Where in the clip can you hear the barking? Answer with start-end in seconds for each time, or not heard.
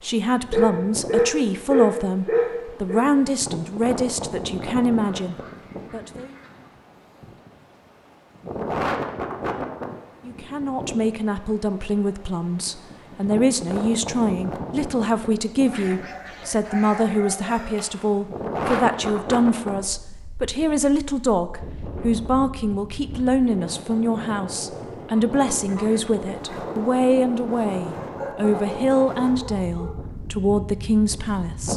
0.5-3.0, 15.7-18.2, 28.0-29.9.